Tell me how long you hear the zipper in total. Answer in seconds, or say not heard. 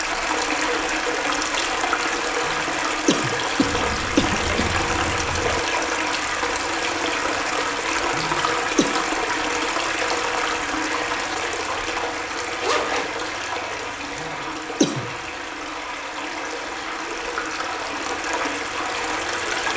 3 s.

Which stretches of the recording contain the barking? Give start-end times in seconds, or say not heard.
not heard.